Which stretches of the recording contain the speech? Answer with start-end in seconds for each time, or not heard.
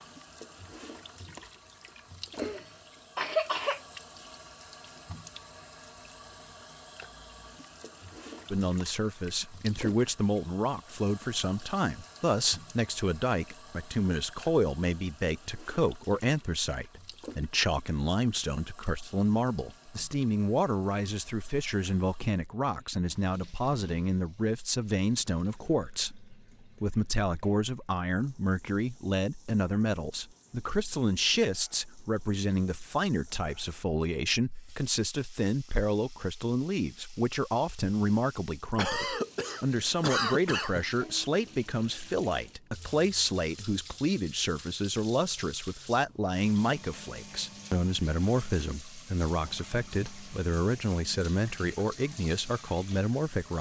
8.5-53.5.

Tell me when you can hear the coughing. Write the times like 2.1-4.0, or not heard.
2.3-3.8, 38.8-40.9.